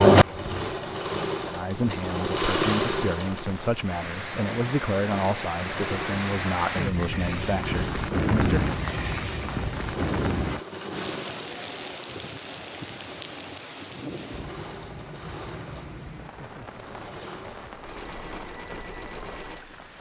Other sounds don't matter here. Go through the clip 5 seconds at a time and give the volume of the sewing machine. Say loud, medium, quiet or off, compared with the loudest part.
loud, quiet, quiet, quiet.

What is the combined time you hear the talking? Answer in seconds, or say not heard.
7 s.